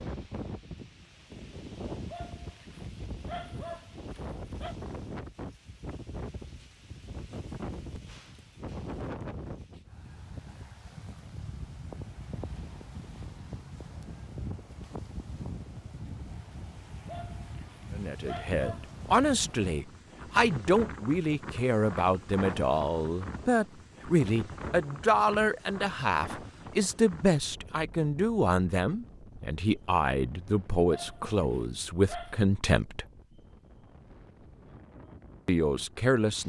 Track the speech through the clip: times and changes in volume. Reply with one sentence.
The speech can be heard from 17.9 to 33.0 s, at a steady volume; and briefly from 35.5 to 36.4 s.